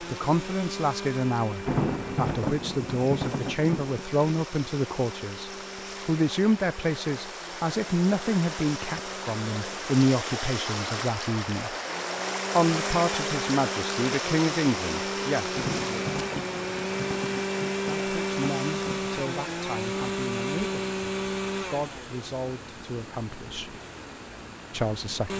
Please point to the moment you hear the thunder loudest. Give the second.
2 s.